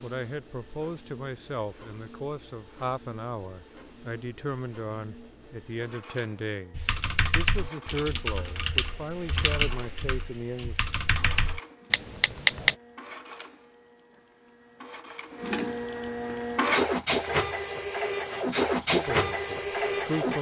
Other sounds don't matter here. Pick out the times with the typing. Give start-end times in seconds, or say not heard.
6.8-12.8.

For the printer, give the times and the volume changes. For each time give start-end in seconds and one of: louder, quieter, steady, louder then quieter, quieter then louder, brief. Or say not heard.
0.0-20.3 louder.